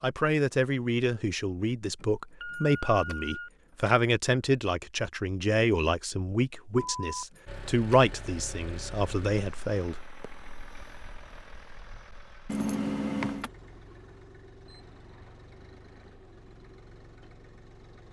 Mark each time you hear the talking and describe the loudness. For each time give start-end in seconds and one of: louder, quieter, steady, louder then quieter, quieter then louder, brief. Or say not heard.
0.0-10.2 steady.